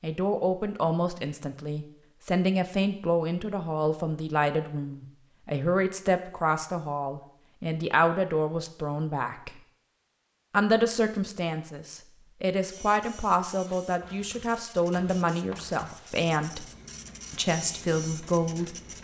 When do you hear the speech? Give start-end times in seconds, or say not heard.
0.0-9.6, 10.5-16.6, 17.3-18.8.